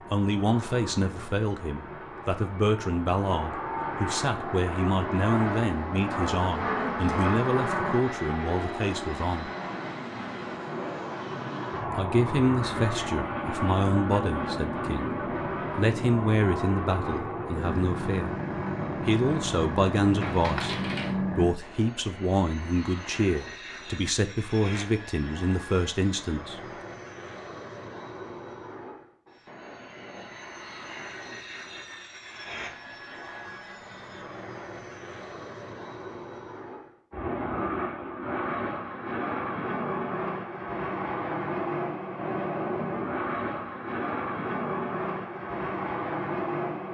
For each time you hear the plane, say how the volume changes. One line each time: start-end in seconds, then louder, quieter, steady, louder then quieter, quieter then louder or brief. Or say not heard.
0.0-46.9 quieter then louder.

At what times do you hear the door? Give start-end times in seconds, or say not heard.
20.2-21.2.